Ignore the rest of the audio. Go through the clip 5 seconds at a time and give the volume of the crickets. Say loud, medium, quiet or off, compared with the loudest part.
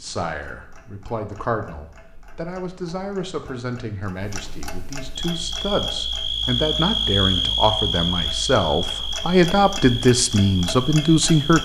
off, loud, medium.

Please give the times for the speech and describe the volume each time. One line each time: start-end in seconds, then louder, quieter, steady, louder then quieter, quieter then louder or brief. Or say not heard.
0.0-11.6 louder.